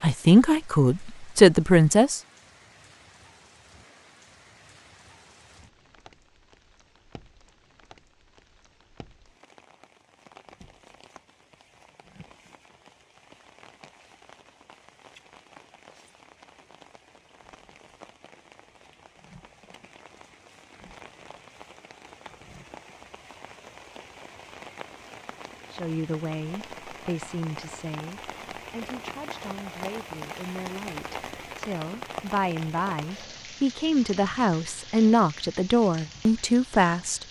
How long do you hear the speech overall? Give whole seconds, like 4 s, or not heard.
14 s.